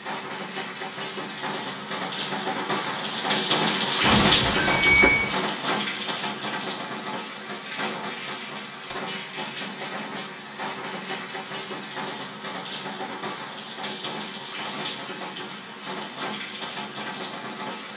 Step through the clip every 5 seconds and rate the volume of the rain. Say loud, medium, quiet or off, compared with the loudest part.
loud, medium, medium, medium.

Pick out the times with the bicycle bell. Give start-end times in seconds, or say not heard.
4.0-5.3.